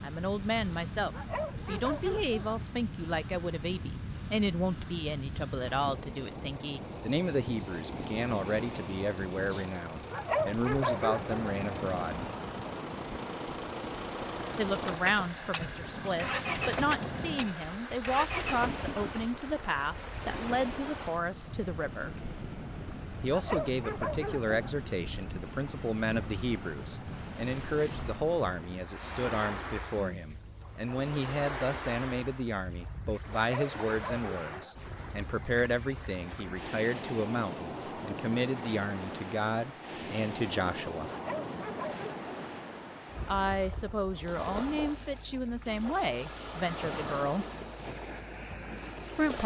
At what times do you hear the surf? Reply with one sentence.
The surf can be heard from 0.0 to 49.4 s.